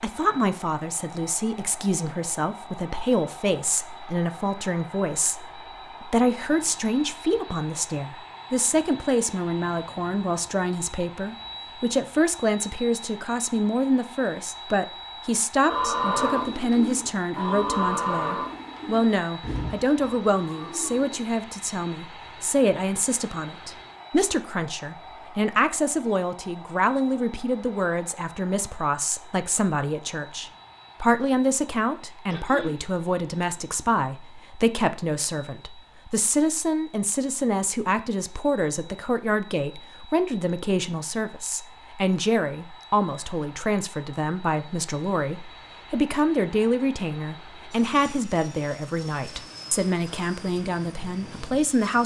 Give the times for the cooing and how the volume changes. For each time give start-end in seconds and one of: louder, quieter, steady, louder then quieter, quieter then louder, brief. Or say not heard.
15.7-21.2 quieter.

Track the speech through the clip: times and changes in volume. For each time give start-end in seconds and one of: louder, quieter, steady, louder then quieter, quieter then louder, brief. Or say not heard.
0.0-52.0 steady.